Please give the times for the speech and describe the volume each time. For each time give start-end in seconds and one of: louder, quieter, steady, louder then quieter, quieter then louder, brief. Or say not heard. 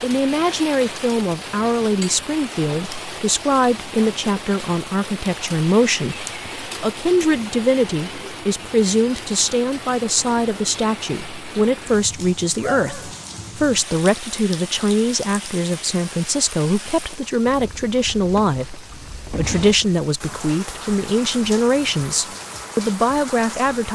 0.0-23.8 steady.